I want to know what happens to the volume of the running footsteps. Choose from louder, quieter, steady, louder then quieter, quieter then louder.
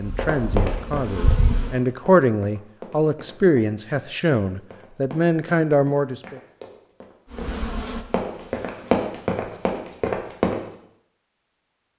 quieter then louder.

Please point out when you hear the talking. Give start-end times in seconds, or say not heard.
0.0-6.4.